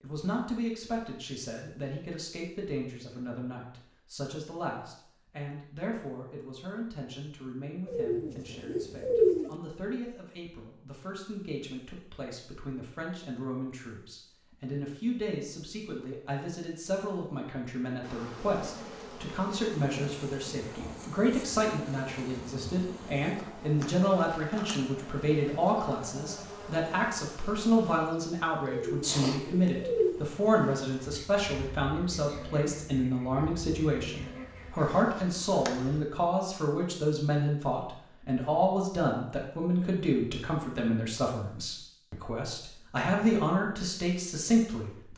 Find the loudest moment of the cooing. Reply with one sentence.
The loudest moment of the cooing is at 9 seconds.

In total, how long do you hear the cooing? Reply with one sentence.
You can hear the cooing for 3 seconds altogether.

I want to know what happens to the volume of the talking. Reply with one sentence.
The volume of the talking goes up.